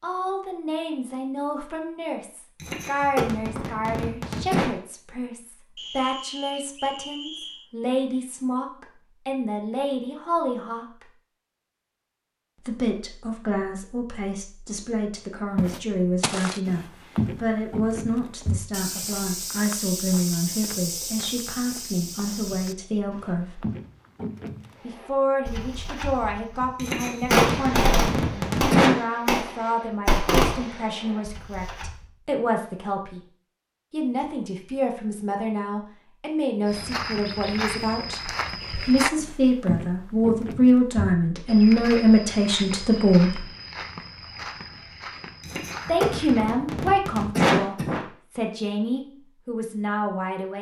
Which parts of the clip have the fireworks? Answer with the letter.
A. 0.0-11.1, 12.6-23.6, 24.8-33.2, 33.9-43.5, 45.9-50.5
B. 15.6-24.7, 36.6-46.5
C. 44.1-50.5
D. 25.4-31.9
D.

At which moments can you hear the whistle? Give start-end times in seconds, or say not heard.
5.8-7.7.